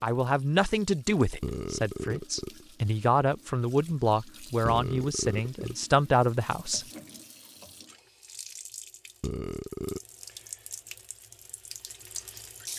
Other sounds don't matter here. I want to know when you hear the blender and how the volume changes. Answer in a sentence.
You can't hear the blender here.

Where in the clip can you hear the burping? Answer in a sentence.
The burping can be heard from 1.4 to 2.6 s, from 4.7 to 5.8 s and from 9.2 to 10.0 s.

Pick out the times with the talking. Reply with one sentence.
You can hear the talking from 0.0 to 6.8 s.